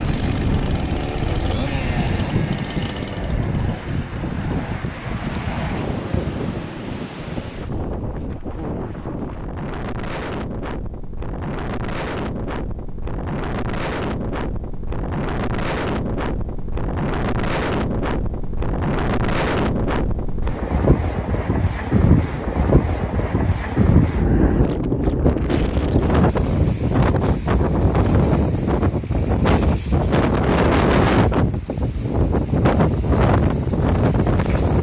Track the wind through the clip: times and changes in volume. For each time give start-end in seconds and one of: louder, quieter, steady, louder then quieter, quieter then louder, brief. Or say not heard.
0.0-34.7 louder.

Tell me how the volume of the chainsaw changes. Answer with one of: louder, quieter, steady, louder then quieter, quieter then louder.
quieter.